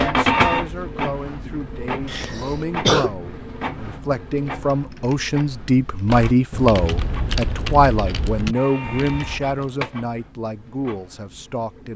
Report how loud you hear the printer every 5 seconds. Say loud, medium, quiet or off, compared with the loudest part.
loud, medium, quiet.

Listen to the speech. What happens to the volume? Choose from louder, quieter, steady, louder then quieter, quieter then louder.
louder then quieter.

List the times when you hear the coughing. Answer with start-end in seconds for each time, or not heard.
2.0-3.1.